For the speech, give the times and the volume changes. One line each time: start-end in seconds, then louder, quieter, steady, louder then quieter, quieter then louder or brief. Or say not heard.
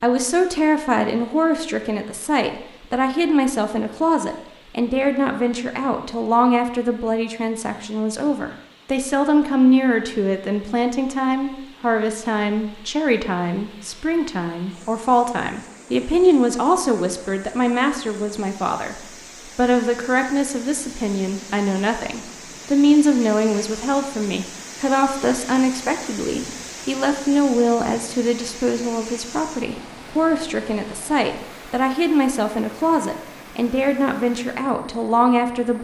0.0-35.7 steady.